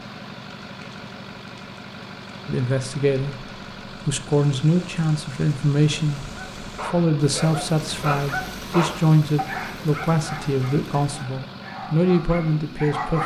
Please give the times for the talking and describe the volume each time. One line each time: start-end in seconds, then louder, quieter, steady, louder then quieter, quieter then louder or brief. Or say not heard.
2.5-13.2 steady.